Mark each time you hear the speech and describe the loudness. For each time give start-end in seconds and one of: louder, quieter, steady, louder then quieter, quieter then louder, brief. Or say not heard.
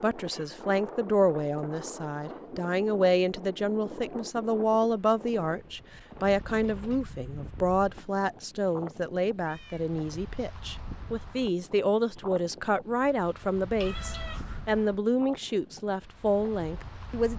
0.0-17.3 steady.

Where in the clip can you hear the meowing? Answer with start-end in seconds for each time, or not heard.
0.2-0.7, 9.4-9.9, 13.8-14.7.